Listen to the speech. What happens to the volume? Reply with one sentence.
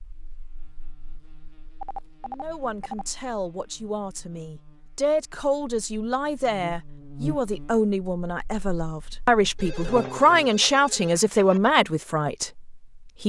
The volume of the speech goes up.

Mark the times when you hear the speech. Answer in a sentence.
The speech can be heard from 2.2 to 13.2 s.